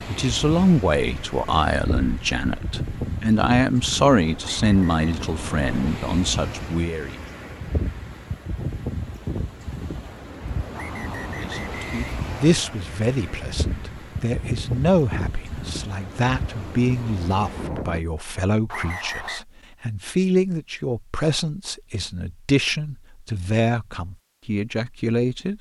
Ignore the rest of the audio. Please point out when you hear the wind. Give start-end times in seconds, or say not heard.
0.0-18.1.